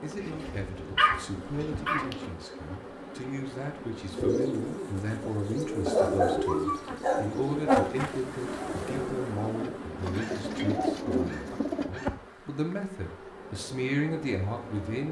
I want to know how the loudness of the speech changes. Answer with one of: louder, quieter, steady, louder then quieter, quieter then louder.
louder.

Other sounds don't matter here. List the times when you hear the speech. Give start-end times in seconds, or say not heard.
0.0-15.0.